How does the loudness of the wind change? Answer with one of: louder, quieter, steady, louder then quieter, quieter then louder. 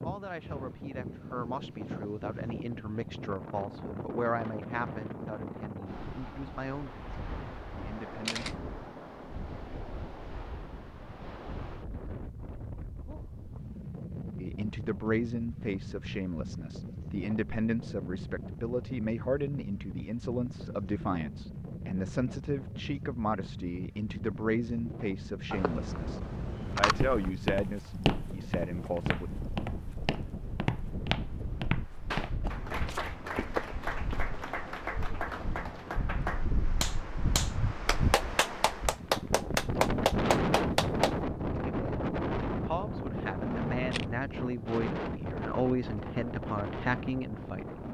louder.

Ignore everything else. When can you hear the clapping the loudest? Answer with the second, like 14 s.
40 s.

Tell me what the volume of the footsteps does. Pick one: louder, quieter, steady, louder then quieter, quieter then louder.
quieter.